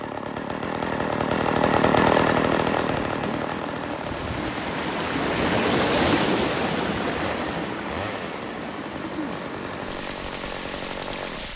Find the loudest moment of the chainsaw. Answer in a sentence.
The loudest moment of the chainsaw is at 2 seconds.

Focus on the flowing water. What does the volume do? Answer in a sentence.
The loudness of the flowing water goes up, then down.